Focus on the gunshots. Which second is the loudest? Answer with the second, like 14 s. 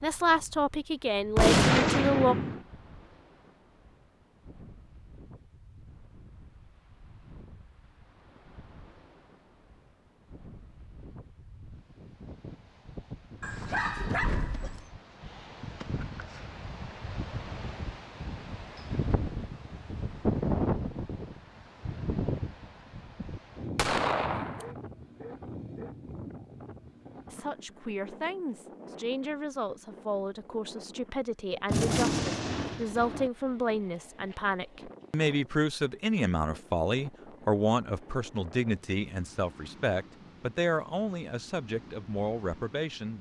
2 s.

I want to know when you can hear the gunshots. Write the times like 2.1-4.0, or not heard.
1.4-2.6, 23.8-24.6, 31.7-33.3.